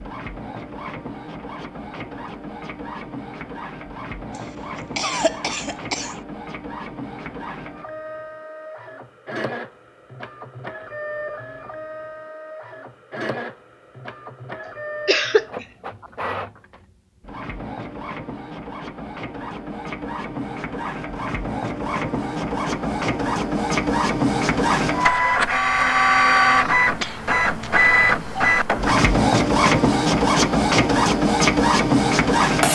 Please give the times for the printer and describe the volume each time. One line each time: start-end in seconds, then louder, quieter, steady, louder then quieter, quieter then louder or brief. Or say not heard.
0.0-32.7 louder.